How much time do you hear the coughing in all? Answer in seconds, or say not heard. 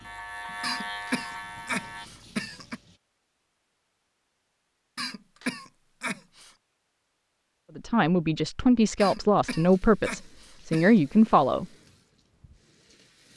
6 s.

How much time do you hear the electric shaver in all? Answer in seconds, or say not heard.
2 s.